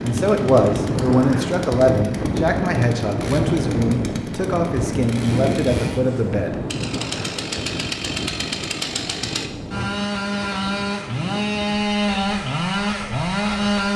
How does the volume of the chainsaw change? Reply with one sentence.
The volume of the chainsaw goes up.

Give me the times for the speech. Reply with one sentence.
The speech can be heard from 0.0 to 6.6 s.